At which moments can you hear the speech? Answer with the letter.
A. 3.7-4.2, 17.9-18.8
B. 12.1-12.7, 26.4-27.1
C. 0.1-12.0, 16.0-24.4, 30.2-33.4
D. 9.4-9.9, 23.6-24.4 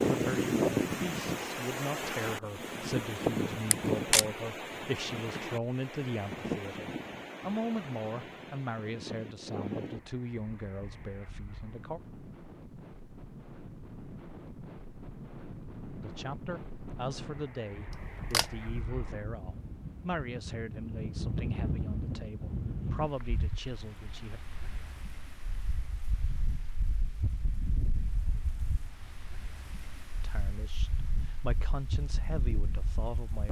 C.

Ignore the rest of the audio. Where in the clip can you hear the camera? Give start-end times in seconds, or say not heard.
3.7-4.2, 17.9-18.8.